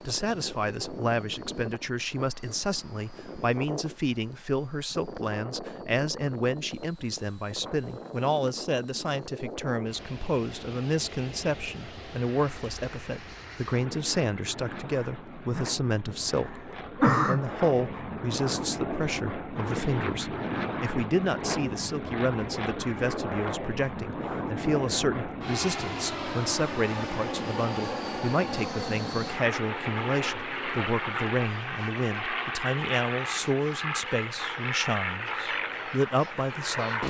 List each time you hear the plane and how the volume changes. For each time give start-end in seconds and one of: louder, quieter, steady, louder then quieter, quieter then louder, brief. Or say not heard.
0.0-37.0 louder.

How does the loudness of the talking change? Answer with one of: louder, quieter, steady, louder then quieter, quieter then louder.
steady.